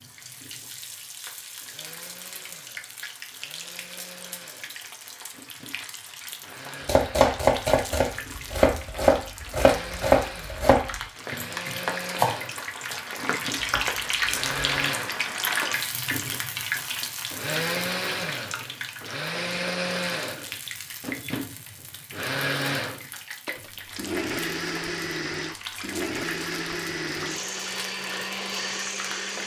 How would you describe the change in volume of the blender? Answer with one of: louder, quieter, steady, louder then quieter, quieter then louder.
louder.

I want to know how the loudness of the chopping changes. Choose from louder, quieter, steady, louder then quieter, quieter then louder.
quieter.